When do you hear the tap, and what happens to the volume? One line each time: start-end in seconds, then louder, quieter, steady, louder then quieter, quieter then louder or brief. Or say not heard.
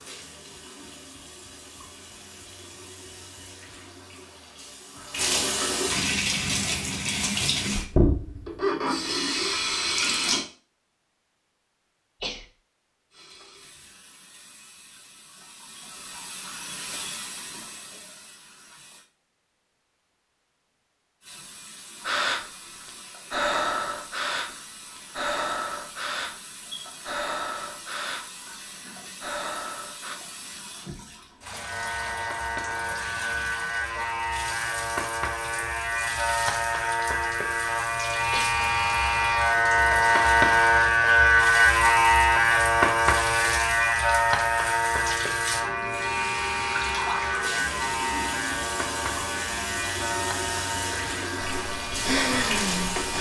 0.0-10.4 louder
13.1-19.1 louder then quieter
21.2-53.1 louder.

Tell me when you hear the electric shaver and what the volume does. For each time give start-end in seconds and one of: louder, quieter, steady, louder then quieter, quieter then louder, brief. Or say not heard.
31.5-53.1 louder then quieter.